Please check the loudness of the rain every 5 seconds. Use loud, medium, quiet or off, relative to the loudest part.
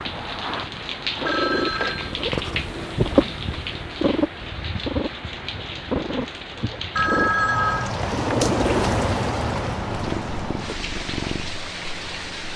medium, loud, medium.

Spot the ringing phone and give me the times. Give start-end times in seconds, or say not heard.
1.2-2.1, 7.0-7.9.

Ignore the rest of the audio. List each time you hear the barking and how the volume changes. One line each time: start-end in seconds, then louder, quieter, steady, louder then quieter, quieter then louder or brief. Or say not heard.
not heard.